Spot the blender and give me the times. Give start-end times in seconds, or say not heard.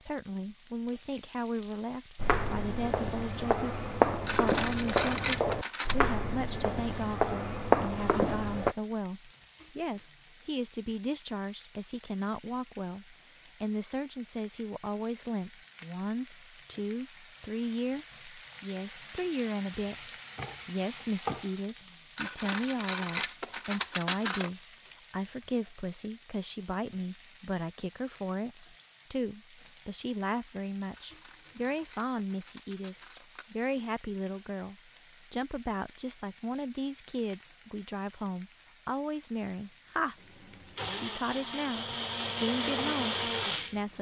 40.3-43.9.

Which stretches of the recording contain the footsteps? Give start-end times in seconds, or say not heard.
2.1-8.8.